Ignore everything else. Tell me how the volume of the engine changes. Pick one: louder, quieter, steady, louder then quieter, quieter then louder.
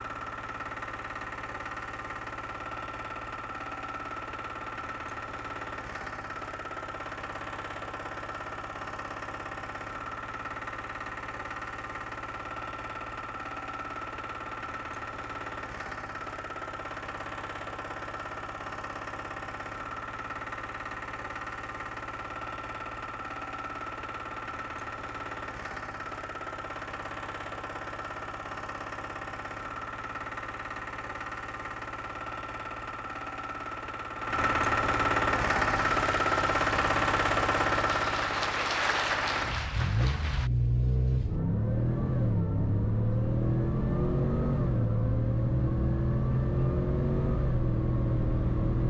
louder.